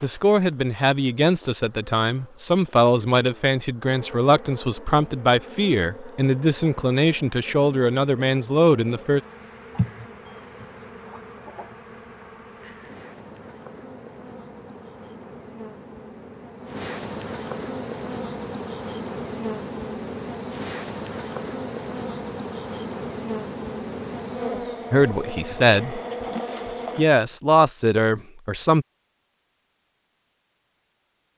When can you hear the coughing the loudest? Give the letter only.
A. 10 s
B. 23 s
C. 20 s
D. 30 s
A.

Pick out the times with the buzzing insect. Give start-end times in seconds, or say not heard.
0.0-27.1.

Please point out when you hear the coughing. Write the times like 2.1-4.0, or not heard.
9.8-11.8.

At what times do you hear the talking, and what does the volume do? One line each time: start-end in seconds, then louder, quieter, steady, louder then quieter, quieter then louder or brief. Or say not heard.
0.0-9.2 steady
24.9-26.0 brief
26.9-28.9 brief.